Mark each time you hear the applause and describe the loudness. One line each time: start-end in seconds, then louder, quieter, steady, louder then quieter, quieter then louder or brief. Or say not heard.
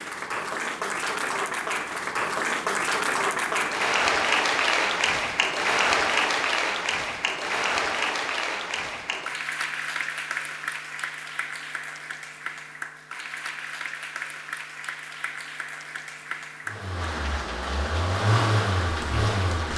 0.0-19.7 quieter.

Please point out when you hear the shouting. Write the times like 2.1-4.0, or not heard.
not heard.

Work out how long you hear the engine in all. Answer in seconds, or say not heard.
3 s.